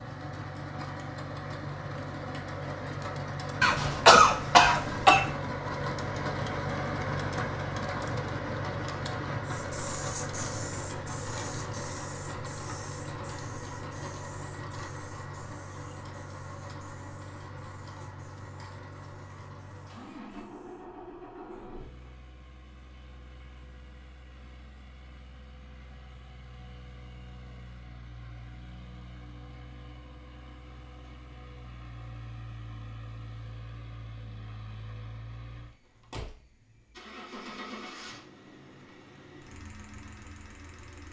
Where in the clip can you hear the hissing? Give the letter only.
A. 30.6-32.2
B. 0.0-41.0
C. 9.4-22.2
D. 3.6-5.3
C.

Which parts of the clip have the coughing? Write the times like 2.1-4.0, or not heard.
3.6-5.3.